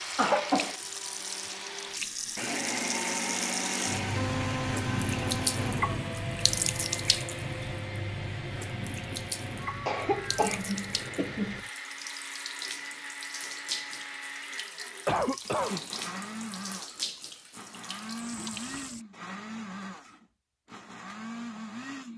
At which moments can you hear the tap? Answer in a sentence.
The tap can be heard from 0.0 to 19.1 s.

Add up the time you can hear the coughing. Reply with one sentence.
You can hear the coughing for 3 seconds altogether.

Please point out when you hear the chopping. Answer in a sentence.
The chopping can't be heard in this clip.